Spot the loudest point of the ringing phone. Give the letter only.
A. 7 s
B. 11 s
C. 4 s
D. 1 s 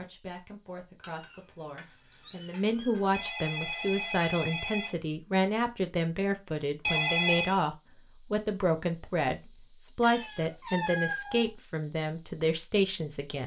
A.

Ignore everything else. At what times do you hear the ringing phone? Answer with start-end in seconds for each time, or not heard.
3.1-5.0, 6.8-7.5.